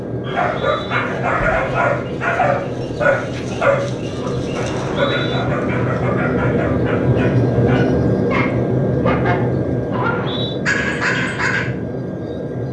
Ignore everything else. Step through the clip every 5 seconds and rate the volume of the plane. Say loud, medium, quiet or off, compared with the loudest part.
medium, loud, medium.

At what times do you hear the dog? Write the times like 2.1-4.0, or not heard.
0.2-11.7.